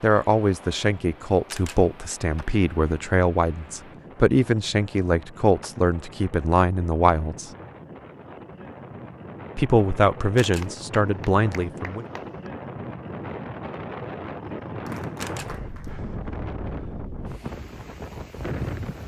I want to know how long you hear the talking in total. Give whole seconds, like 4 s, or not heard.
10 s.